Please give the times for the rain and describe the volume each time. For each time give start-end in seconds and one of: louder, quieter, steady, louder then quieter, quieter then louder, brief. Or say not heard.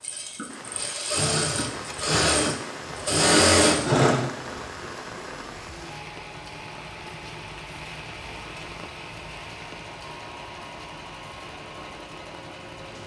0.0-13.0 quieter.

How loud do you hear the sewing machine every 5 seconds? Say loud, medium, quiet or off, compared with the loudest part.
loud, quiet, quiet.